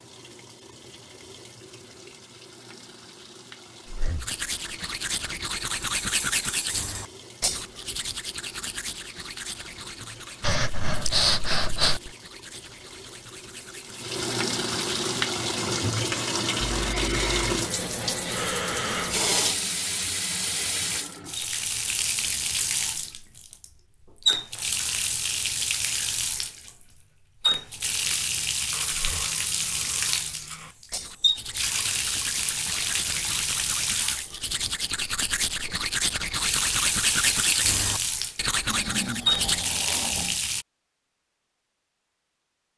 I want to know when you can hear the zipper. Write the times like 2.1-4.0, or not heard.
16.6-17.5.